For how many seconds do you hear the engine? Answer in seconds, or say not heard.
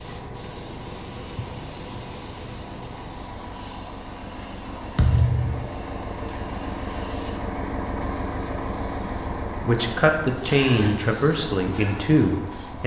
13 s.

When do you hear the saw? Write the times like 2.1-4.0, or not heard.
not heard.